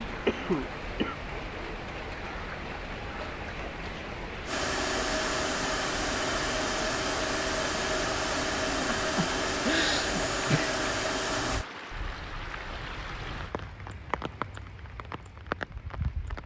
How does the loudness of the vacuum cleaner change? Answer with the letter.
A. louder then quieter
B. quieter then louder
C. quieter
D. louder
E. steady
E.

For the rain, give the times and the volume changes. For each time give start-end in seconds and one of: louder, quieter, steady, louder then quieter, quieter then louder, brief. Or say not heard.
0.0-16.4 steady.